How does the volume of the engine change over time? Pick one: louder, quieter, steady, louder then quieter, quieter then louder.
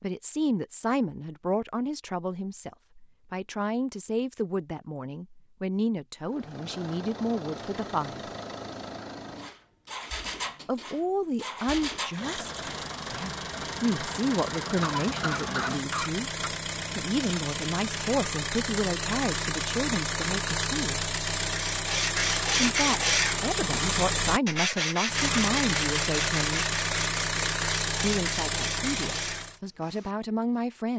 louder.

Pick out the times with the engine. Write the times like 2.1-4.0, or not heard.
6.2-29.6.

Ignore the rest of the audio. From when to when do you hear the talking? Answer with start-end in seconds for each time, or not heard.
0.0-8.2, 10.7-12.5, 13.1-16.3, 16.9-21.1, 22.6-26.7, 28.0-30.9.